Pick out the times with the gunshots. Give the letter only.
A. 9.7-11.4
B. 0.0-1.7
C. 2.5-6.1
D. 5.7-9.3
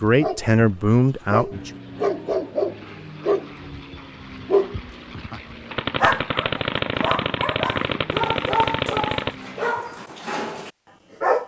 D.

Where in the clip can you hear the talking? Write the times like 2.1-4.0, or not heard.
0.0-1.7.